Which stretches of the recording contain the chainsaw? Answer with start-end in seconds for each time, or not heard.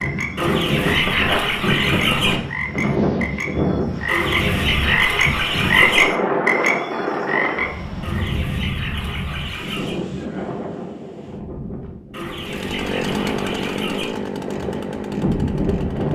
12.4-16.0.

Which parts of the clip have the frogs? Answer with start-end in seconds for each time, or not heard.
0.0-8.3.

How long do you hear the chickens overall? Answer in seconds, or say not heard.
8 s.